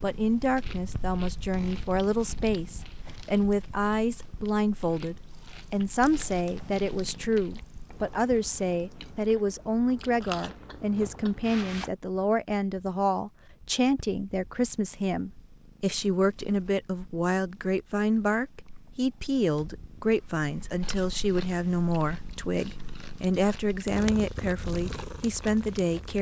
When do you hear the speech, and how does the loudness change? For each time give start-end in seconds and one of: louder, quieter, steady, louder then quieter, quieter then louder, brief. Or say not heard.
0.0-26.1 steady.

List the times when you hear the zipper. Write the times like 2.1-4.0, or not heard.
not heard.